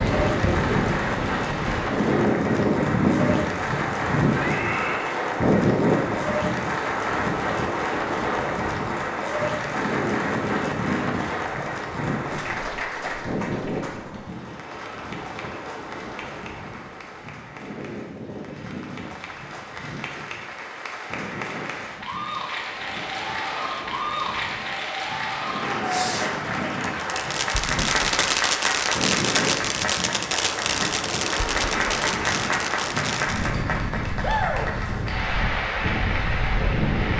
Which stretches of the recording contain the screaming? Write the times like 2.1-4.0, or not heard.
4.4-5.2.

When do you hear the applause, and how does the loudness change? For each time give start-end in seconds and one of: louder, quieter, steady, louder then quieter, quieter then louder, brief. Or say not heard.
0.0-37.1 quieter then louder.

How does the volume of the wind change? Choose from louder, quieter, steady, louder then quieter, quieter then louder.
quieter then louder.